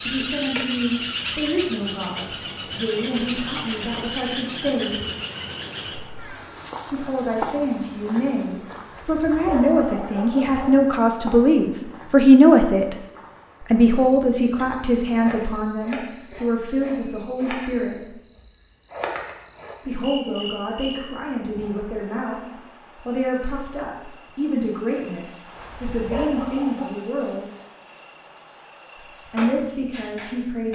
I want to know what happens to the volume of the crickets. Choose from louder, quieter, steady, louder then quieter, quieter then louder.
quieter then louder.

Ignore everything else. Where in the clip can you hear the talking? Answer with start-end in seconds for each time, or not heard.
0.0-5.0, 6.9-12.9, 13.7-18.2, 19.9-27.4, 29.2-30.6.